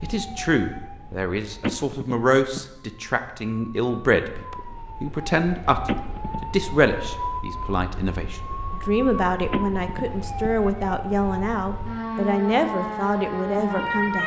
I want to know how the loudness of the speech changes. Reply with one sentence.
The volume of the speech stays about the same.